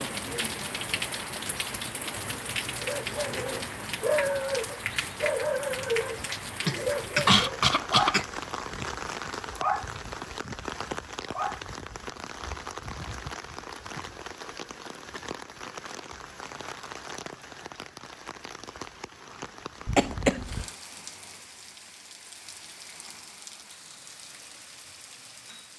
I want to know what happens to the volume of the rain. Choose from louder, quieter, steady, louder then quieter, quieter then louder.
quieter.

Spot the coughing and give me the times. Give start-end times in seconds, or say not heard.
6.2-8.2, 19.9-20.6.